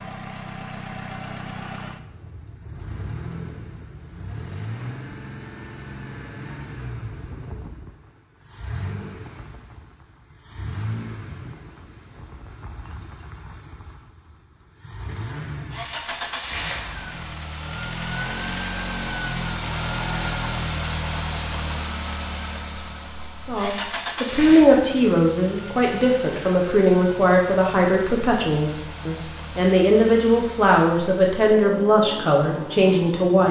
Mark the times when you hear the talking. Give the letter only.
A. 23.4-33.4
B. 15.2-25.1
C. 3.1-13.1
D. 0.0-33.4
A.